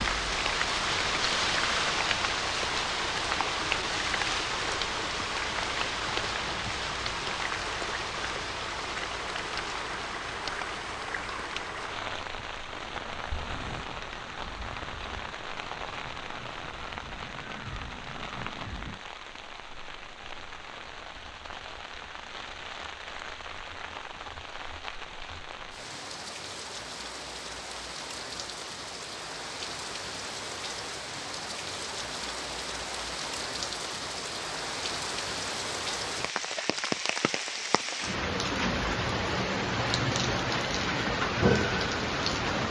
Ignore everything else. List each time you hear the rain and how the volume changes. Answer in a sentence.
You can hear the rain from 0.0 to 42.6 s, getting quieter then louder.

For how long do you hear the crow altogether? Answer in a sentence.
You can hear the crow for 6 seconds altogether.